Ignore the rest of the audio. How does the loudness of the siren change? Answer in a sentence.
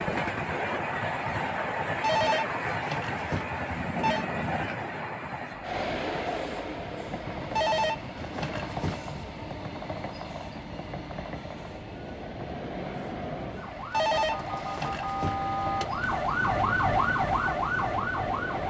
The volume of the siren goes up.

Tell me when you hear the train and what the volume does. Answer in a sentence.
You can hear the train from 0.0 to 18.6 s, getting quieter.